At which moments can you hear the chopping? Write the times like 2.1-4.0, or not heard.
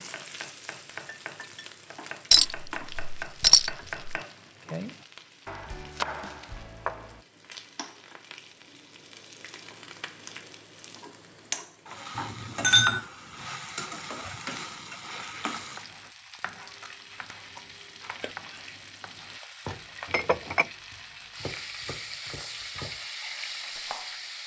0.0-7.2, 15.6-24.2.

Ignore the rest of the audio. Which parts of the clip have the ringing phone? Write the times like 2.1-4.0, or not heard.
not heard.